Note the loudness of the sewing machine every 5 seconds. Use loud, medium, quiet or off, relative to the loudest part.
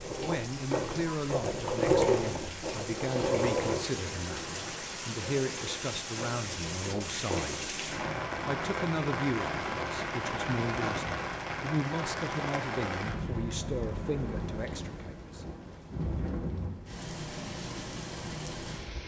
loud, medium, off, off.